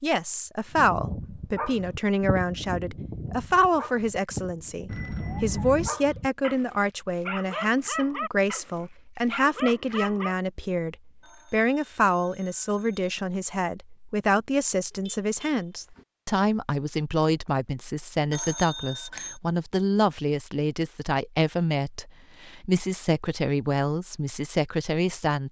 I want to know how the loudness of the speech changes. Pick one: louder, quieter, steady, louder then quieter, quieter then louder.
steady.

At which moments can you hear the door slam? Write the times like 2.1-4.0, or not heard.
not heard.